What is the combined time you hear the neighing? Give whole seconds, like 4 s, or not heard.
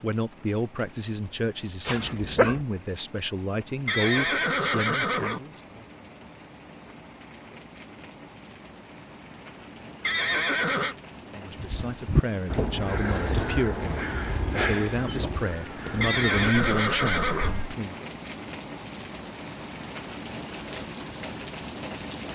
4 s.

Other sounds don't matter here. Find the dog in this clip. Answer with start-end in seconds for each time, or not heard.
1.9-2.6.